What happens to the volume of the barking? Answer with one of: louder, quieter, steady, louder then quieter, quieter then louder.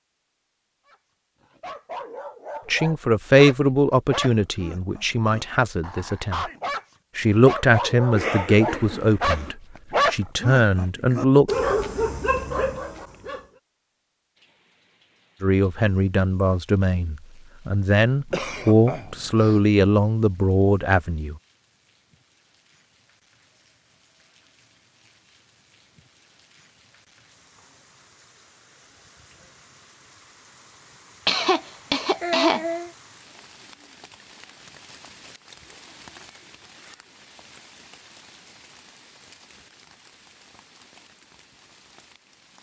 louder.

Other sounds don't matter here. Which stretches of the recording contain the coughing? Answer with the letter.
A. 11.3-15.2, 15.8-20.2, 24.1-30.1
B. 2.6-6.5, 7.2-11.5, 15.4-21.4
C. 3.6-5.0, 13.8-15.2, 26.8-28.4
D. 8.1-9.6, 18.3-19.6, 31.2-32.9
D.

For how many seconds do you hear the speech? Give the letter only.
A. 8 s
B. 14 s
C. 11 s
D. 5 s
B.